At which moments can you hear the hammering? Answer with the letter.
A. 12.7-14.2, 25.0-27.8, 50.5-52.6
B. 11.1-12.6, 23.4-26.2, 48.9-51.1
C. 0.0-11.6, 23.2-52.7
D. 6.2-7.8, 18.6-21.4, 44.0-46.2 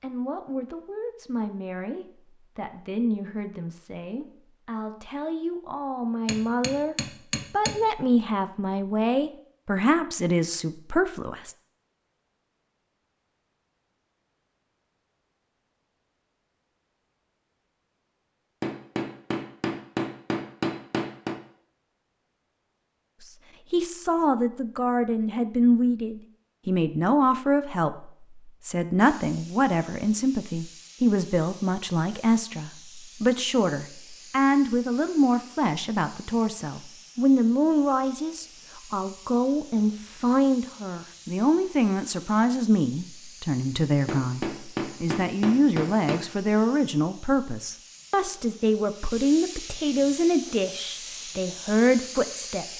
D.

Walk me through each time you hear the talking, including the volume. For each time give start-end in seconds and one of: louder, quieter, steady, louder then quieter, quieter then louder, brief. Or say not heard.
0.0-11.6 louder
23.2-52.7 steady.